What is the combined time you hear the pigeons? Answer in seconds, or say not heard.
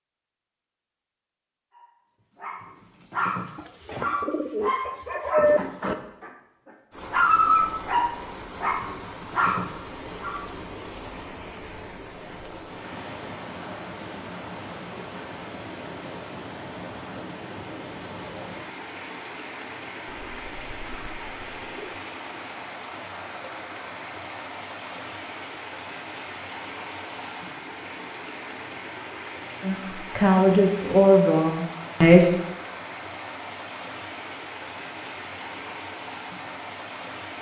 4 s.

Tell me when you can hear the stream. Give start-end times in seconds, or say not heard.
6.9-37.3.